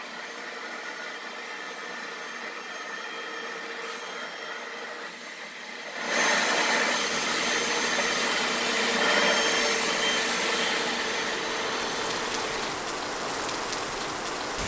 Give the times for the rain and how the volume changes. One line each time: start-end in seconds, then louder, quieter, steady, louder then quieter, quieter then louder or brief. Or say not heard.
7.0-14.6 louder.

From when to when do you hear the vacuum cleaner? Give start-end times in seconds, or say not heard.
0.0-12.8.